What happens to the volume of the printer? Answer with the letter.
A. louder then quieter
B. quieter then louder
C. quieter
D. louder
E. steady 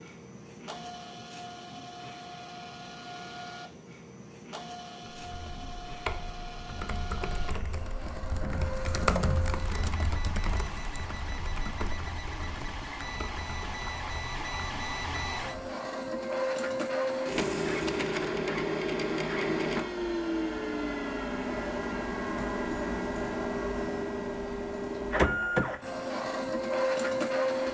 D.